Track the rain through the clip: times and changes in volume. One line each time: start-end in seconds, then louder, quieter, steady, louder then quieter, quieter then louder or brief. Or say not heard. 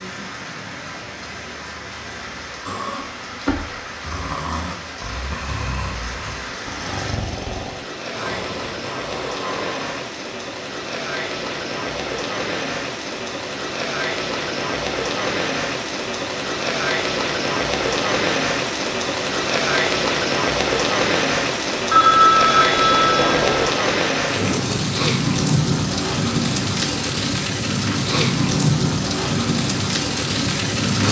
0.0-31.0 louder.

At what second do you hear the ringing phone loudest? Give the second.
22 s.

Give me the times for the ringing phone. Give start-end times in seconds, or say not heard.
21.9-23.8.